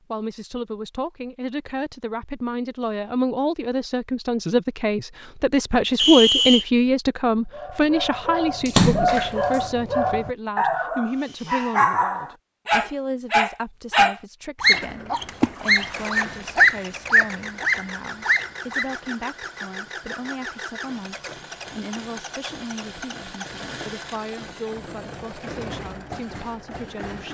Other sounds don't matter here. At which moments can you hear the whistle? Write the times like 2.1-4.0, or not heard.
6.0-6.7.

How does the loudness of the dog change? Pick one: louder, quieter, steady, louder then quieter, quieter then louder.
louder.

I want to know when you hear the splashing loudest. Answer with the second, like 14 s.
9 s.